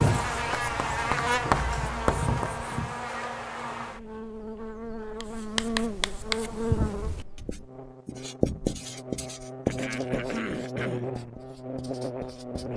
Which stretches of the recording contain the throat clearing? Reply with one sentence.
The throat clearing can be heard from 1.6 to 2.1 s and from 9.7 to 11.1 s.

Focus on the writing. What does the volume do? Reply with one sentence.
The loudness of the writing goes down.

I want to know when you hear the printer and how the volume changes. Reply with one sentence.
You can't hear the printer here.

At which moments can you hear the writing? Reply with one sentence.
You can hear the writing from 0.0 to 3.0 s and from 5.2 to 12.7 s.